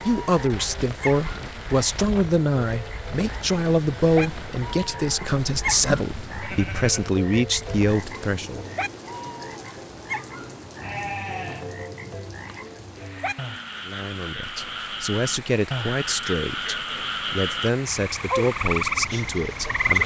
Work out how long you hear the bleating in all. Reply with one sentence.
You can hear the bleating for 4 seconds altogether.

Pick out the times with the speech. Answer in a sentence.
The speech can be heard from 0.1 to 8.7 s and from 13.8 to 20.0 s.